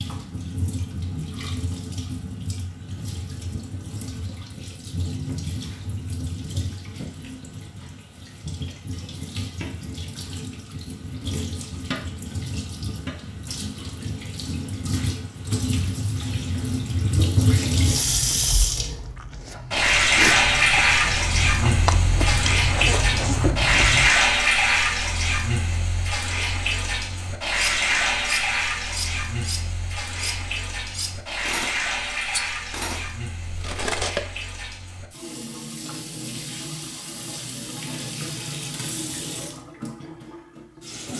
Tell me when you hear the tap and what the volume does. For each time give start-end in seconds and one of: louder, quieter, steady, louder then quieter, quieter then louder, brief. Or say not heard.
0.0-41.1 louder then quieter.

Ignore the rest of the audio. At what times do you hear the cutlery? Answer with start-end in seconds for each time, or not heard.
27.8-34.2.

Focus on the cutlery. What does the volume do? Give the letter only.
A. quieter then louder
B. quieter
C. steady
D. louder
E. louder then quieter
C.